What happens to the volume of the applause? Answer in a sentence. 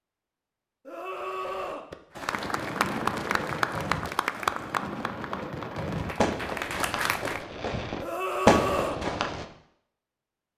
The loudness of the applause goes down, then up.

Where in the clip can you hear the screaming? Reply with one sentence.
The screaming can be heard from 0.8 to 1.9 s and from 8.0 to 9.0 s.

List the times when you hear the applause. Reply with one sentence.
The applause can be heard from 2.2 to 7.5 s.